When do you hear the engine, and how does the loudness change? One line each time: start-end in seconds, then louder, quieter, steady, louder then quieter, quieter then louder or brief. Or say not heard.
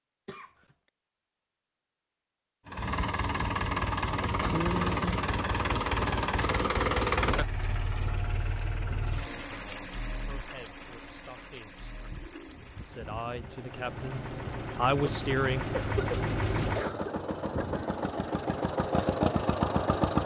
2.6-20.2 quieter then louder.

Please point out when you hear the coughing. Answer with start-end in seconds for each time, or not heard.
0.2-0.8, 15.0-17.2.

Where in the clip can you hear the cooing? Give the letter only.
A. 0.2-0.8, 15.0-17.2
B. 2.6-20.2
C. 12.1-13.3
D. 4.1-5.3
C.